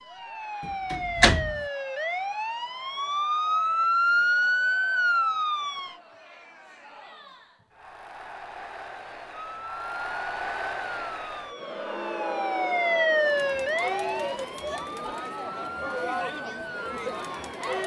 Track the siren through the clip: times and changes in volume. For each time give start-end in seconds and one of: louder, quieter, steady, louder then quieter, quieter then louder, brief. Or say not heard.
0.0-6.0 louder
9.4-17.7 louder then quieter.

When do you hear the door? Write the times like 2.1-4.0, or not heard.
0.6-1.6.